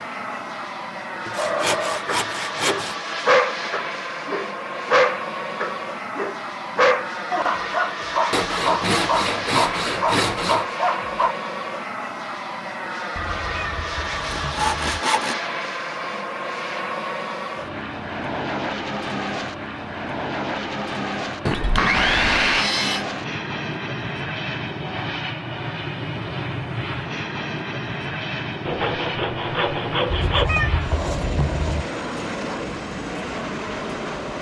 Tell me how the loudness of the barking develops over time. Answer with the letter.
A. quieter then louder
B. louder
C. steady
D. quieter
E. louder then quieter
C.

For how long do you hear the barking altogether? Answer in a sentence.
You can hear the barking for 10 seconds altogether.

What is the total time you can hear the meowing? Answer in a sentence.
The meowing can be heard for 4 seconds in total.